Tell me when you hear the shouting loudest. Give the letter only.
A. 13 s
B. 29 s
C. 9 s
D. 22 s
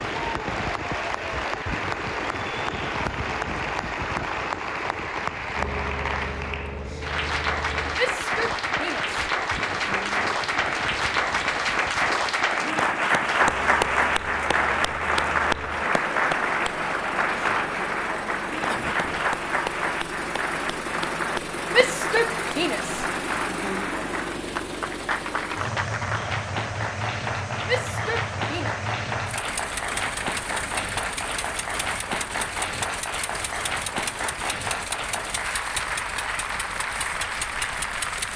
D.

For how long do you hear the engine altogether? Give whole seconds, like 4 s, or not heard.
38 s.